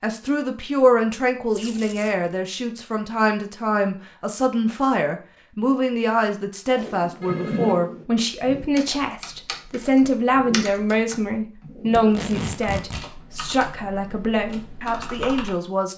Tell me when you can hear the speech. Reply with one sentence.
You can hear the speech from 0.0 to 15.9 s.